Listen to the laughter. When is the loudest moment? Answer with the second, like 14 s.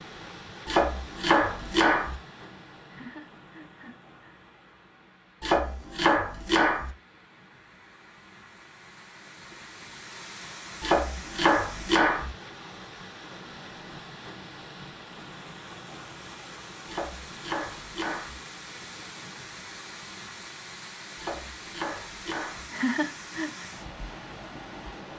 23 s.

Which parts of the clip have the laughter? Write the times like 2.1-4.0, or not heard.
2.9-4.4, 22.7-23.6.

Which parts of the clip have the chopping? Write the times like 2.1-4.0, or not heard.
0.7-2.1, 5.4-6.9, 10.8-12.3, 16.9-18.4, 21.1-22.6.